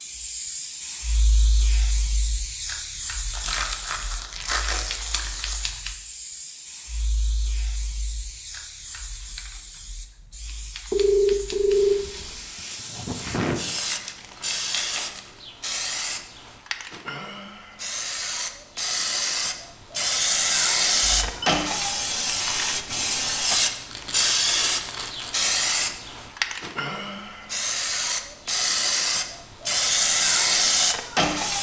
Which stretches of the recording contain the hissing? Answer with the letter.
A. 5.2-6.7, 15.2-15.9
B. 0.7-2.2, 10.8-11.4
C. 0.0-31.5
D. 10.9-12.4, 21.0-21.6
C.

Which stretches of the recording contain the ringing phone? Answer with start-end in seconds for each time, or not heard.
10.9-12.4, 21.0-21.6.